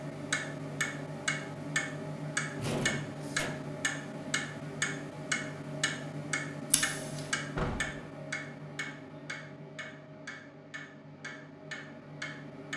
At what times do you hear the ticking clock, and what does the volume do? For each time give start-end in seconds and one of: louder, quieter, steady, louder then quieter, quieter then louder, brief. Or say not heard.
0.0-12.7 quieter.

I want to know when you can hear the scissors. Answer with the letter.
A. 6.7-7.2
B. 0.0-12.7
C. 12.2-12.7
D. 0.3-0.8
A.